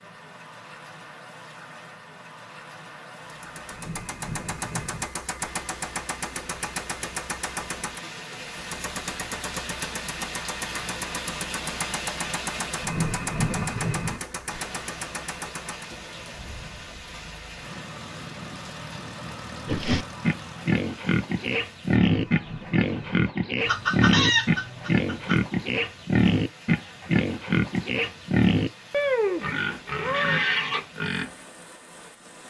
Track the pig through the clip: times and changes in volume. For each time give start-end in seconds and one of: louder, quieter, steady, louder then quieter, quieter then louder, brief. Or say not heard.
19.6-31.3 steady.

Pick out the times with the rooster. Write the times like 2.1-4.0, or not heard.
23.6-25.4.